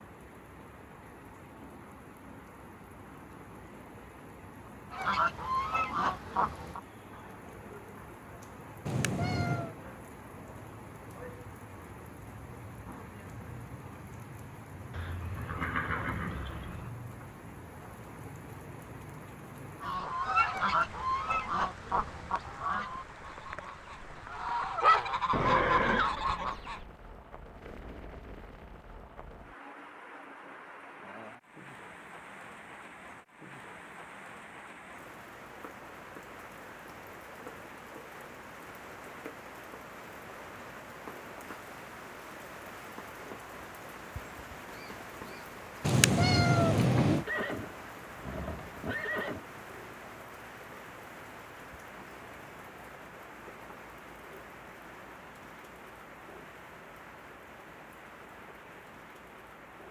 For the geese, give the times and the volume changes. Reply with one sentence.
The geese can be heard briefly from 4.9 to 6.8 s; and from 19.8 to 26.9 s, getting quieter then louder.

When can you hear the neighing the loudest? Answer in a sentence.
The loudest moment of the neighing is at 26 seconds.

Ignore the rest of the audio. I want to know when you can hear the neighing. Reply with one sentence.
The neighing can be heard from 14.9 to 16.9 s, from 25.3 to 26.1 s and from 47.2 to 49.5 s.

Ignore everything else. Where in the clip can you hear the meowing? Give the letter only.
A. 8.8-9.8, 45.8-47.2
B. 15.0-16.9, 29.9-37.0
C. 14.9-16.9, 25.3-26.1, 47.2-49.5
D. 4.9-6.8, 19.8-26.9
A.